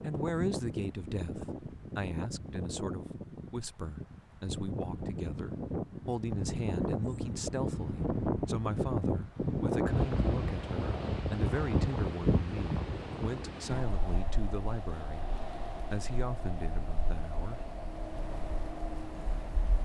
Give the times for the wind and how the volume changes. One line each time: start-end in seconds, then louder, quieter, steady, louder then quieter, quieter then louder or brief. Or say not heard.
0.0-19.8 louder then quieter.